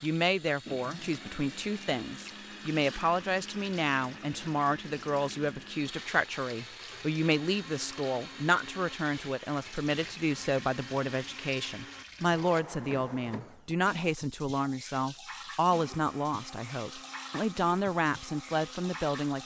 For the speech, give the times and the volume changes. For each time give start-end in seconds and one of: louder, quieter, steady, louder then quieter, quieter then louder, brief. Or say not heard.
0.0-19.4 steady.